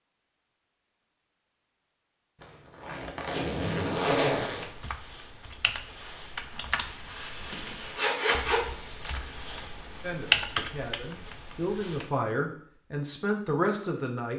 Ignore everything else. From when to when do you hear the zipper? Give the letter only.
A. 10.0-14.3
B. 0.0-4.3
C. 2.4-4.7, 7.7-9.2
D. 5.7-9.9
C.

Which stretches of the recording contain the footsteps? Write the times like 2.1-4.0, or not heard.
not heard.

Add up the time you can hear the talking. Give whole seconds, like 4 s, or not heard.
4 s.